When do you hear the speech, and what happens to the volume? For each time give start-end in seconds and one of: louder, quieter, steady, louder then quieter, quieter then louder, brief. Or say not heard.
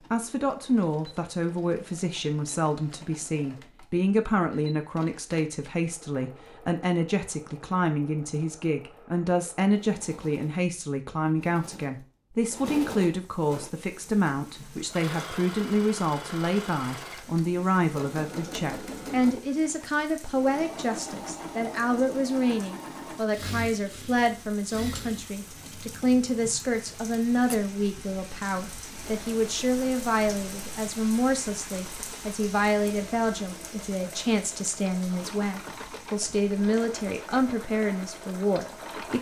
0.1-39.1 steady.